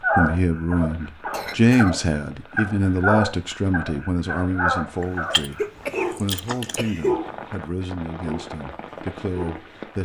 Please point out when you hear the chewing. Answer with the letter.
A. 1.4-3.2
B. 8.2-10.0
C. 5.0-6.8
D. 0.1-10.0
C.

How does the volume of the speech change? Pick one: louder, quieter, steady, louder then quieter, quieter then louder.
quieter.